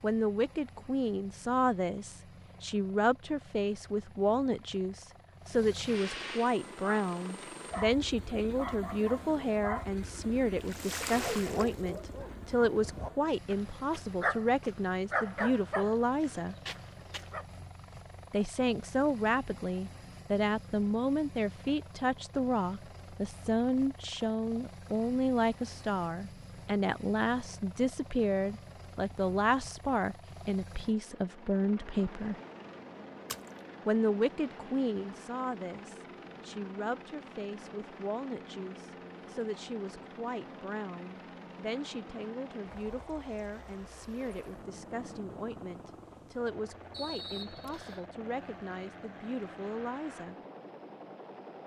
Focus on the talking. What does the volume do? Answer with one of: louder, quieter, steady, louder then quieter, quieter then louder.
quieter.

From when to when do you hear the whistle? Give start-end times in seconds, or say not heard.
46.9-48.0.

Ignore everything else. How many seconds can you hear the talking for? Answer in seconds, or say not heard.
47 s.